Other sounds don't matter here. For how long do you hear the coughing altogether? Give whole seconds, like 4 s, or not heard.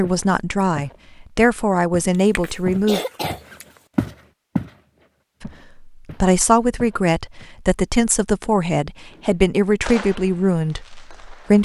2 s.